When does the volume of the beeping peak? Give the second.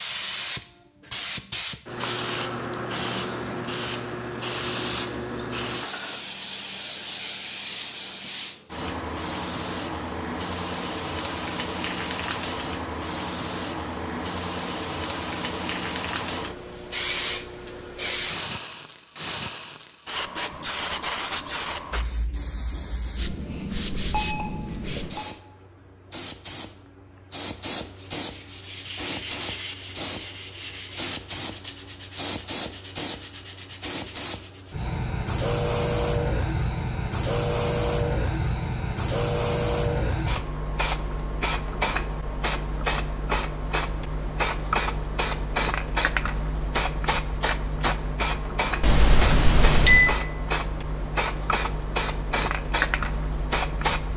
50 s.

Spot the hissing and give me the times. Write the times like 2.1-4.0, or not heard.
0.0-54.1.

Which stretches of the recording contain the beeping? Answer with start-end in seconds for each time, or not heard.
24.1-25.3, 48.8-50.1.